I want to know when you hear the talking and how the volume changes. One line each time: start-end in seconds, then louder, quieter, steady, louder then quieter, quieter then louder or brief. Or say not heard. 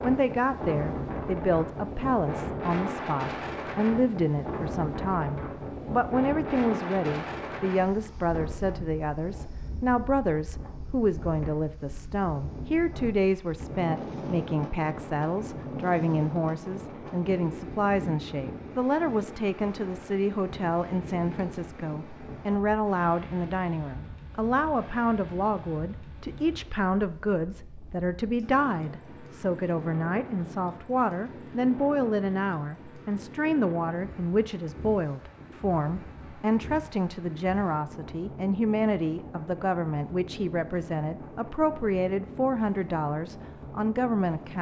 0.0-44.5 steady.